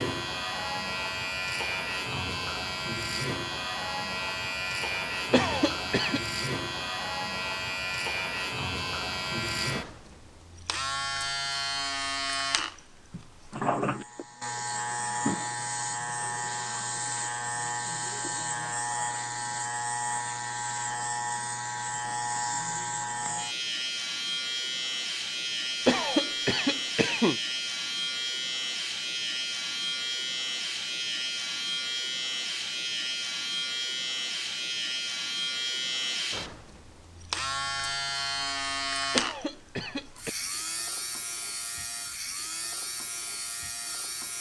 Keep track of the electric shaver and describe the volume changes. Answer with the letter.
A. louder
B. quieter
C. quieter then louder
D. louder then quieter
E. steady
E.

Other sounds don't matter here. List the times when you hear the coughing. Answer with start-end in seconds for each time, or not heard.
5.3-6.2, 25.9-27.4, 39.1-40.4.